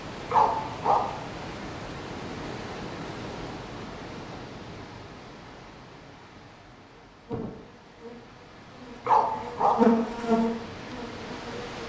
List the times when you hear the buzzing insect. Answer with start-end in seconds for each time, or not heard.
7.0-11.8.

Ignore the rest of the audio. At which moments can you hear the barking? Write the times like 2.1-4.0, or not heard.
0.3-1.1, 9.1-9.8.